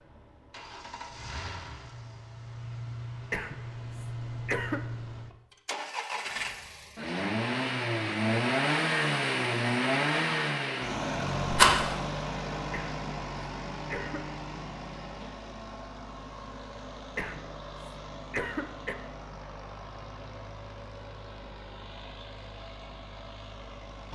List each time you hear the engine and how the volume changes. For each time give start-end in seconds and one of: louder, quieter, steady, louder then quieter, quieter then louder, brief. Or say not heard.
0.0-24.0 louder then quieter.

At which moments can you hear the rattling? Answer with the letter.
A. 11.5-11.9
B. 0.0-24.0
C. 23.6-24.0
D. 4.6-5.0
A.